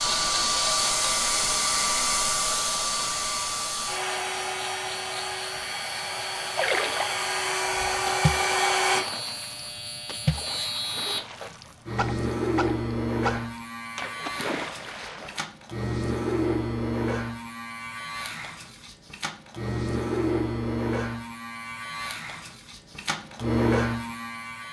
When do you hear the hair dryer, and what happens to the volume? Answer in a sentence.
You can hear the hair dryer from 0.0 to 9.1 s, getting quieter then louder.